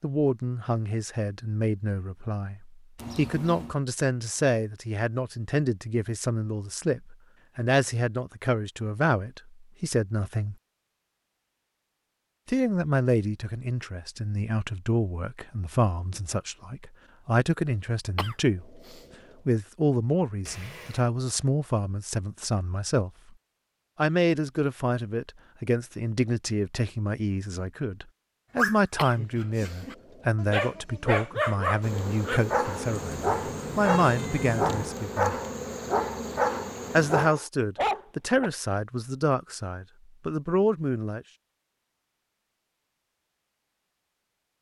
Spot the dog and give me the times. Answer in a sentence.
The dog can be heard from 28.6 to 38.5 s.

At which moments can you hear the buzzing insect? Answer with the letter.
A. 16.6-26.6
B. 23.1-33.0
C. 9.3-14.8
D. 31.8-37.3
D.